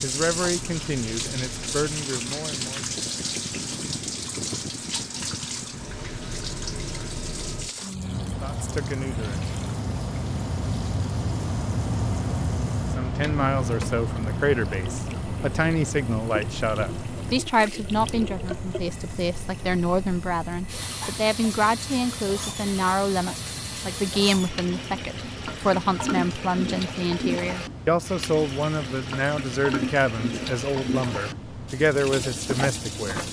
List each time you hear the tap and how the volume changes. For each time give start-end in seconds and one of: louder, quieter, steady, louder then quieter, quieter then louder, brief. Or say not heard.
0.0-33.2 quieter then louder.